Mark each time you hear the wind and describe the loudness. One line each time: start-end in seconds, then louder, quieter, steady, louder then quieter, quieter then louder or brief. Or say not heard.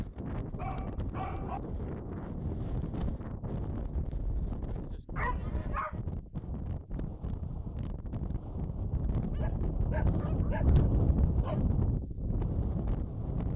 0.0-13.5 louder.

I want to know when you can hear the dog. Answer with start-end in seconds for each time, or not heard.
0.6-1.6, 5.2-6.0, 9.3-11.7.